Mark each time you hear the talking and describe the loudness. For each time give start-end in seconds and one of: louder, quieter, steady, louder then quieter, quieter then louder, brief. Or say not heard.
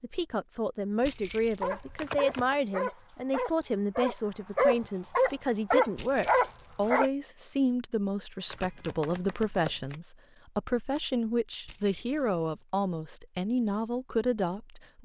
0.0-15.0 steady.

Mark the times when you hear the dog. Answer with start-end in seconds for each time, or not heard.
1.6-7.1.